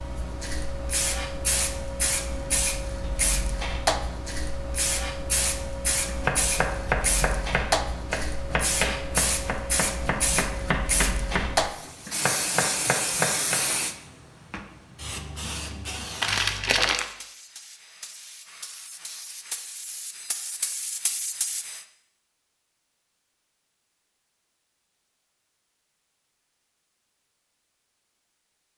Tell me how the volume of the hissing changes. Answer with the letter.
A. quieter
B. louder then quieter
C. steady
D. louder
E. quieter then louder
A.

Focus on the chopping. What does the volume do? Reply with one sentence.
The volume of the chopping stays about the same.